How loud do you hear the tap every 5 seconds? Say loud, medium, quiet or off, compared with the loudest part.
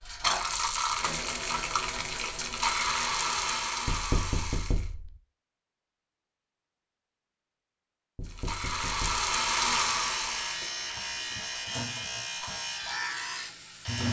loud, loud, medium.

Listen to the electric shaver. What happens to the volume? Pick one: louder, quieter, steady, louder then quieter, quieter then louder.
steady.